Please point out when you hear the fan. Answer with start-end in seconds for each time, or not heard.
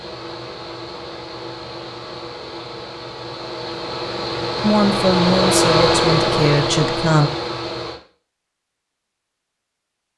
0.0-8.0.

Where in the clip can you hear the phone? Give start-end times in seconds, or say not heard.
not heard.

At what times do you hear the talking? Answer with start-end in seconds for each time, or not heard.
4.6-7.3.